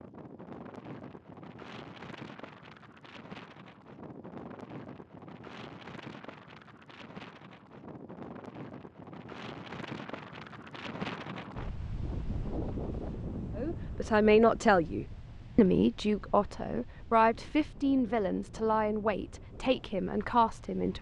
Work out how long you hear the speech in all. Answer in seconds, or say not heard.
7 s.